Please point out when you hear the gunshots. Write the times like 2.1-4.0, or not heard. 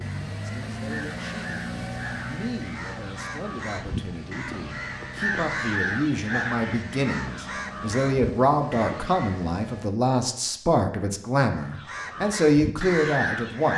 not heard.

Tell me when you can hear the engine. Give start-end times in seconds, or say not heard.
0.0-9.9.